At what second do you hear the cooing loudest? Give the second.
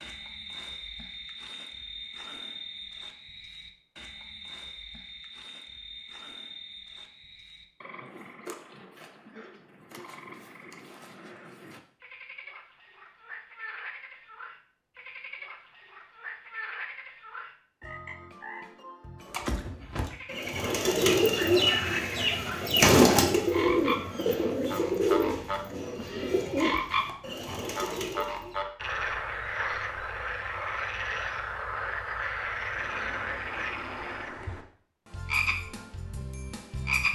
23 s.